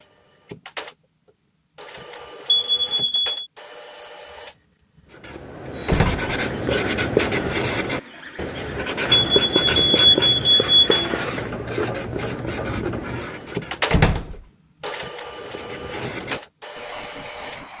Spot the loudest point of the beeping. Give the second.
10 s.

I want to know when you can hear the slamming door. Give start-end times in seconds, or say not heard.
5.8-6.2, 13.9-14.4.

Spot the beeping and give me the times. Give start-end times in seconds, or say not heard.
2.5-3.5, 9.1-10.8.